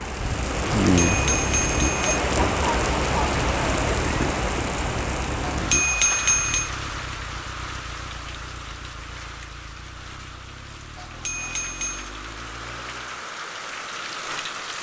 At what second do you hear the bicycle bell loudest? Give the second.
6 s.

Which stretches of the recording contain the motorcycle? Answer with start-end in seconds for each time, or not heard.
0.2-13.3.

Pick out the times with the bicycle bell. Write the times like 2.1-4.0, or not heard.
0.9-2.2, 5.5-6.7, 10.9-12.1.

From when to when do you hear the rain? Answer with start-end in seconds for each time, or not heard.
0.0-14.7.